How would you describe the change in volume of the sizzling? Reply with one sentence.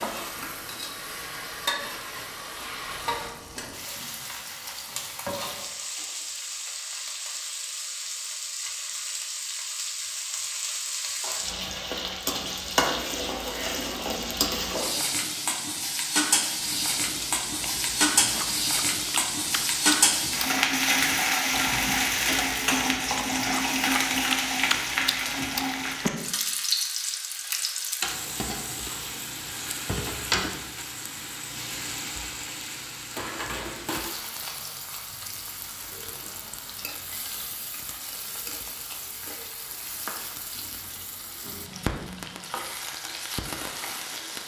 The volume of the sizzling goes up, then down.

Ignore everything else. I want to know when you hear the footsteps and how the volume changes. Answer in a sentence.
You can't hear the footsteps here.